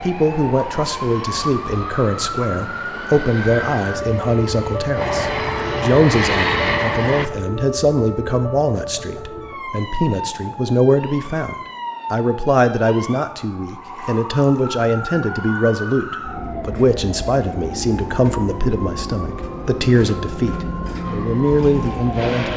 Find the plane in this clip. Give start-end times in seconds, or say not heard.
0.0-7.3, 21.0-22.5.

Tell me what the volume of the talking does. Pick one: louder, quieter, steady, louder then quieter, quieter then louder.
steady.